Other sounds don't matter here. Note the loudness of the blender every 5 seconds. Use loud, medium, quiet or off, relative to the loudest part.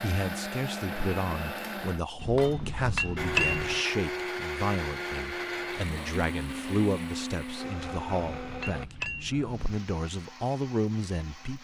loud, loud, quiet.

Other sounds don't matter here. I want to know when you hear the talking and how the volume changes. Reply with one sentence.
You can hear the talking from 0.0 to 11.5 s, at a steady volume.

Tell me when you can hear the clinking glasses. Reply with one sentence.
The clinking glasses can be heard from 2.2 to 3.8 s and from 7.8 to 9.7 s.